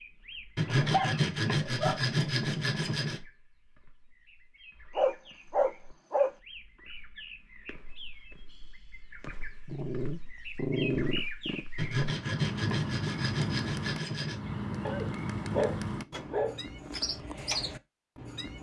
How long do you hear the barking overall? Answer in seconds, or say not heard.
7 s.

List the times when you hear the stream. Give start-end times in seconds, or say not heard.
not heard.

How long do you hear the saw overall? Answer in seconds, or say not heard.
5 s.